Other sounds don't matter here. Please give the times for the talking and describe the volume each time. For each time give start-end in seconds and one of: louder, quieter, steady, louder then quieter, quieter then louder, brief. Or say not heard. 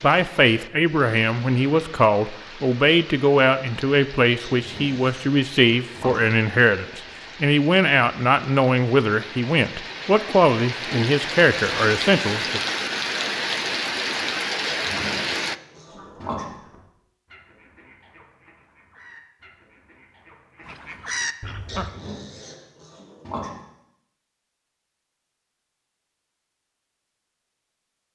0.0-12.6 steady.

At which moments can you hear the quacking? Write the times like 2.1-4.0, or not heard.
15.8-21.9.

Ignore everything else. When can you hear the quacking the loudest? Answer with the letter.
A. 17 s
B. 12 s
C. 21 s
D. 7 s
C.